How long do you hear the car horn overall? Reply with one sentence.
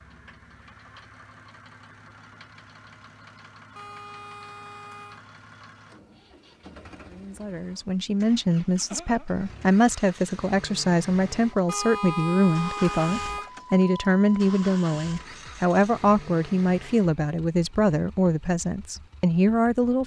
You can hear the car horn for 3 seconds altogether.